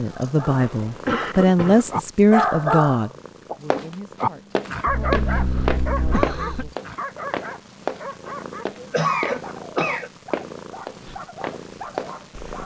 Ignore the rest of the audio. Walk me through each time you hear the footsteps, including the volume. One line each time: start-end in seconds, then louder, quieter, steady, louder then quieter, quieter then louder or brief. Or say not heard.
3.7-12.6 quieter.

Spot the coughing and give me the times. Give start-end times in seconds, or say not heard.
0.6-2.0, 4.8-6.8, 8.8-10.1.